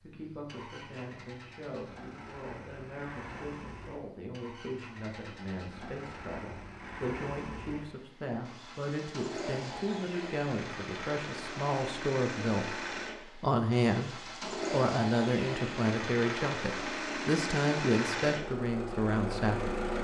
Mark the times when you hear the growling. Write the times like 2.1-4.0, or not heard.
not heard.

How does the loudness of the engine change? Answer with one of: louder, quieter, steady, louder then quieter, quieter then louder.
louder.